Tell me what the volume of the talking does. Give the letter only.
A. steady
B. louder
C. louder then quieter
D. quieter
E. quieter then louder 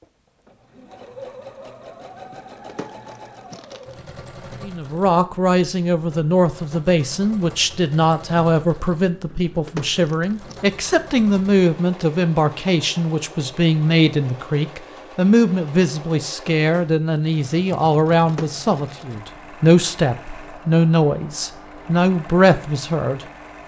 A.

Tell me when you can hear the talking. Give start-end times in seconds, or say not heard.
4.6-23.2.